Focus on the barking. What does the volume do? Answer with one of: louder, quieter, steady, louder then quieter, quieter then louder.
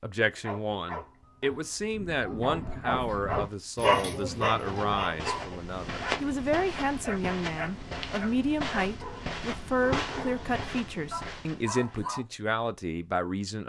louder then quieter.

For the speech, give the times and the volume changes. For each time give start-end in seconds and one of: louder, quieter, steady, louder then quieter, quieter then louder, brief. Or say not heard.
0.0-13.6 steady.